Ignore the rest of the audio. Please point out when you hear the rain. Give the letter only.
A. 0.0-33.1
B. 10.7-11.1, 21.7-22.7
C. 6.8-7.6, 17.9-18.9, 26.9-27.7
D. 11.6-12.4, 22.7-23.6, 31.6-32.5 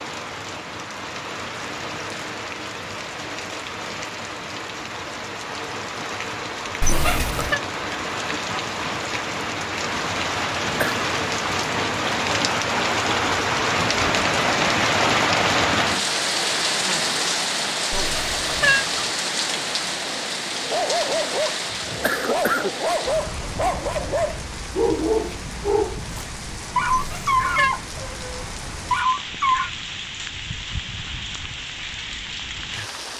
A.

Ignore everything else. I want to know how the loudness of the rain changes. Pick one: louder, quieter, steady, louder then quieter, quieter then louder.
louder then quieter.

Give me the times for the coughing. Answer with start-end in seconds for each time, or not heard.
10.7-11.1, 21.7-22.7.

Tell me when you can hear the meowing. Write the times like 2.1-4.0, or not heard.
6.8-7.6, 17.9-18.9, 26.9-27.7.